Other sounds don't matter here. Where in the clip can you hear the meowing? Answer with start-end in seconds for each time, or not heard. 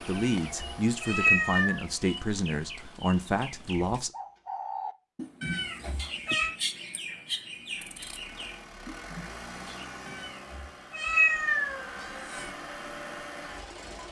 0.1-1.8, 5.4-6.5, 10.1-12.5.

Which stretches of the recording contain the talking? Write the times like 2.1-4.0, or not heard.
0.0-4.1.